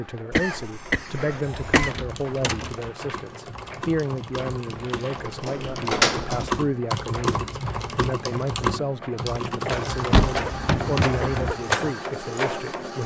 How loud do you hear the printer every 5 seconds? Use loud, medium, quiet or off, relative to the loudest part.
quiet, medium, loud.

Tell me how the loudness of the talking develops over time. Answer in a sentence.
The loudness of the talking stays about the same.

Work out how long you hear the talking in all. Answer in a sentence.
The talking can be heard for 13 seconds in total.